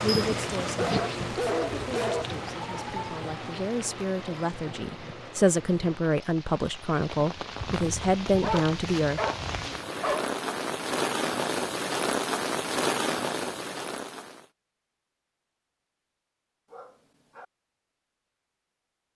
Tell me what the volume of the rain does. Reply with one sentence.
The loudness of the rain goes down, then up.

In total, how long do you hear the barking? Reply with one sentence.
The barking can be heard for 4 seconds in total.